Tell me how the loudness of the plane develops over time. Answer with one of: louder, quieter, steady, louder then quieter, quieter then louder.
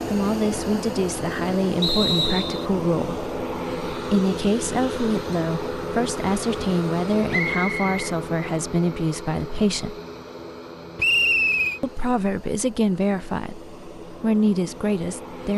quieter.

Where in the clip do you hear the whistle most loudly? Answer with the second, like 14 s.
11 s.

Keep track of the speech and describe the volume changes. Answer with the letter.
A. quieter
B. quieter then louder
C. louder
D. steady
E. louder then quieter
D.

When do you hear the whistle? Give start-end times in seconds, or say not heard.
1.8-2.6, 7.3-8.1, 10.9-11.8.